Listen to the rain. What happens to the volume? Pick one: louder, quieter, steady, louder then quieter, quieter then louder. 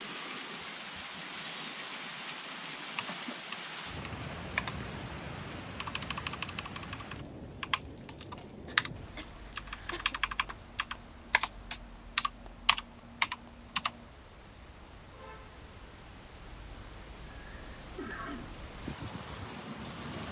quieter then louder.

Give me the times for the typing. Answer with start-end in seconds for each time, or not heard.
3.0-4.8, 5.5-13.9.